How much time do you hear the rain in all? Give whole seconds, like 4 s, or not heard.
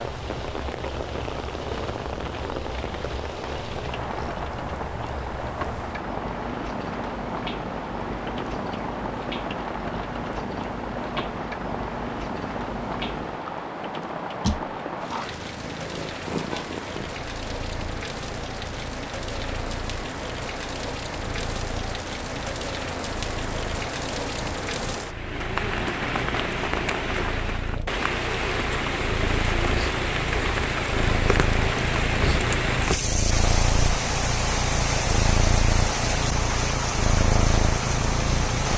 39 s.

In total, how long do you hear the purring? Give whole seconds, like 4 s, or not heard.
39 s.